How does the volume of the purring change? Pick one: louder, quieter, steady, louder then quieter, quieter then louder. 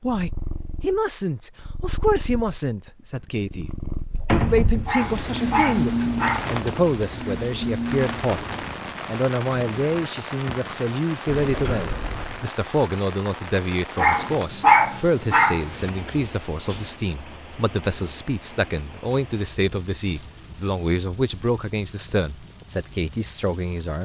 louder then quieter.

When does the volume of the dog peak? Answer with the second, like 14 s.
15 s.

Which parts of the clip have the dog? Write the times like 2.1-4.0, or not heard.
4.8-6.5, 13.9-15.9.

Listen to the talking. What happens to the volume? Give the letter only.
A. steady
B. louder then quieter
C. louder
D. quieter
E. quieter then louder
A.